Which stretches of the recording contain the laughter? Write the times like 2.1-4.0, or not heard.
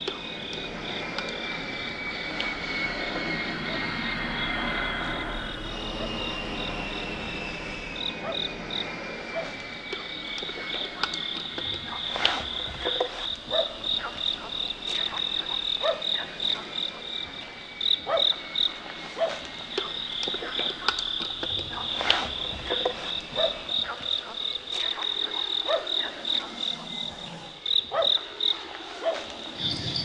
not heard.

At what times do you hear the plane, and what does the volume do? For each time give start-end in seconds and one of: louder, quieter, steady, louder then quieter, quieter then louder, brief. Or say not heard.
0.0-30.0 quieter.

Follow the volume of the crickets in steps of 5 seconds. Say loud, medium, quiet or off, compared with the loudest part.
medium, medium, loud, loud, loud, loud.